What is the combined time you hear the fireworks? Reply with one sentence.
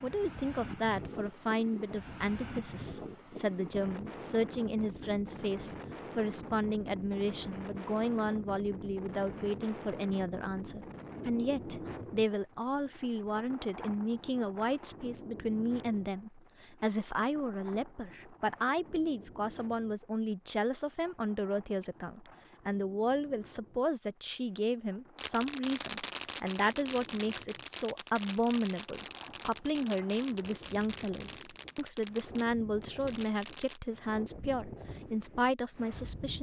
The fireworks can be heard for 9 seconds in total.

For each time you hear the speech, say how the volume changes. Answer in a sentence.
You can hear the speech from 0.0 to 36.3 s, at a steady volume.